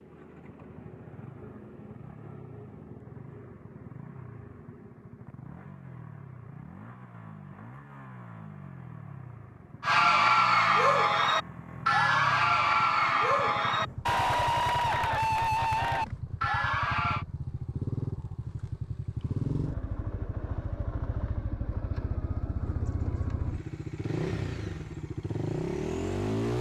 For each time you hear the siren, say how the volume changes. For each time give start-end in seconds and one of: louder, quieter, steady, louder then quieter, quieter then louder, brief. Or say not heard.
not heard.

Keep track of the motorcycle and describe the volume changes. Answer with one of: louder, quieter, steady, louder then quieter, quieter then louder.
louder.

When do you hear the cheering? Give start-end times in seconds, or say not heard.
9.8-17.2.